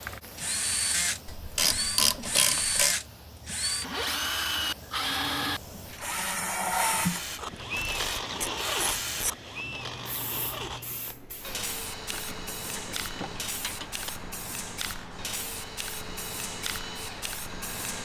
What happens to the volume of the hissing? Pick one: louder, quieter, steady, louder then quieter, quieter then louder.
louder.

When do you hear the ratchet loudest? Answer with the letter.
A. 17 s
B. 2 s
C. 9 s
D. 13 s
B.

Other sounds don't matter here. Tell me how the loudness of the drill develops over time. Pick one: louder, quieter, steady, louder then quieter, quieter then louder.
quieter.